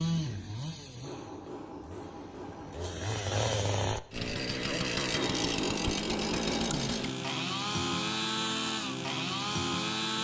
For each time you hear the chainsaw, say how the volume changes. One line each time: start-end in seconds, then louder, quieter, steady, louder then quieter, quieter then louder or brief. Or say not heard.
0.0-10.1 louder.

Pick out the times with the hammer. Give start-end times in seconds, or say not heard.
1.0-2.9, 5.2-6.9.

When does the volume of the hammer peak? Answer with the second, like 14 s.
6 s.